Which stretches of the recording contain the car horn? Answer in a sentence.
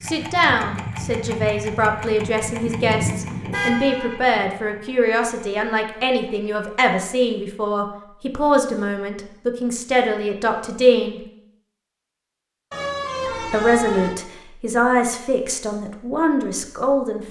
The car horn can be heard from 3.5 to 4.2 s and from 12.7 to 14.2 s.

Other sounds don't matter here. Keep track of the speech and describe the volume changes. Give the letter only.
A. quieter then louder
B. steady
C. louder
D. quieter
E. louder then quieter
B.